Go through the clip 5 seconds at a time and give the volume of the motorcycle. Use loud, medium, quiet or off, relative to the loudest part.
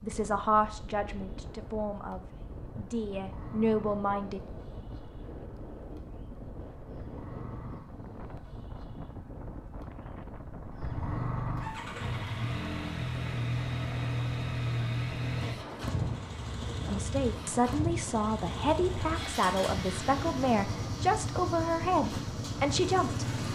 quiet, quiet, loud, loud, loud.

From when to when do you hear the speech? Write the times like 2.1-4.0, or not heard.
0.0-4.4, 16.9-23.2.